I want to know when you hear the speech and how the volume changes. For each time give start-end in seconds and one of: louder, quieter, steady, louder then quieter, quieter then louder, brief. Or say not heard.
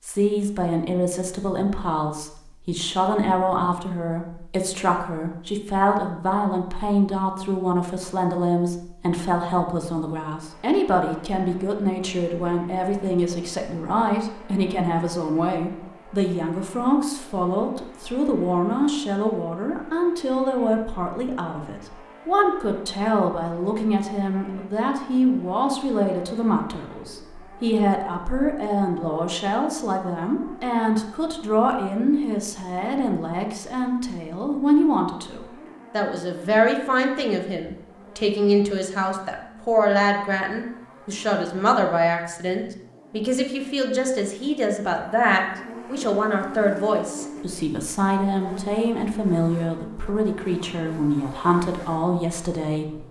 0.1-53.0 steady.